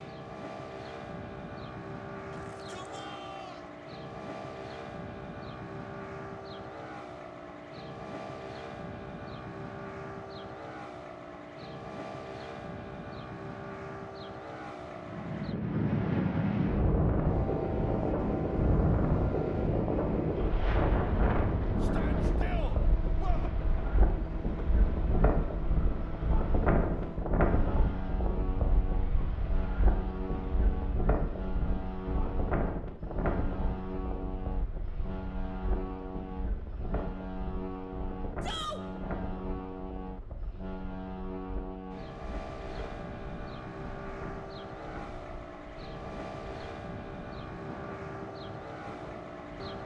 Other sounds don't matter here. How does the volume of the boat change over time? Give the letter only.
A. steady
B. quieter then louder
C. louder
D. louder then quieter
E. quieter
A.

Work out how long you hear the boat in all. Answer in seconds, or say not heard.
50 s.